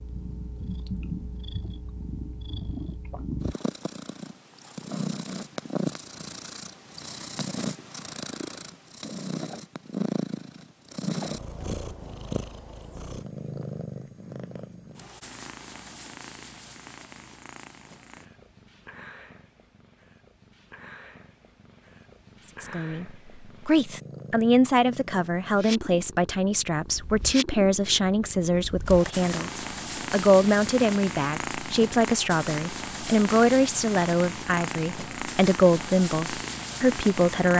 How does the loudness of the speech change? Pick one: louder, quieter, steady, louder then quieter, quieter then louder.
steady.